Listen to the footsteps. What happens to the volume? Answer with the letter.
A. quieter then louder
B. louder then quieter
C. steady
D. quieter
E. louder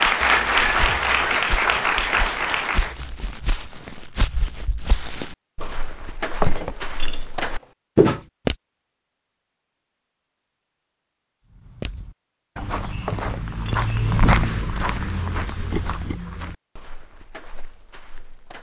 B.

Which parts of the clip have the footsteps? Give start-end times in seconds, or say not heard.
0.0-8.6, 11.6-18.5.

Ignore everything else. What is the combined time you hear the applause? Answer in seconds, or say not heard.
3 s.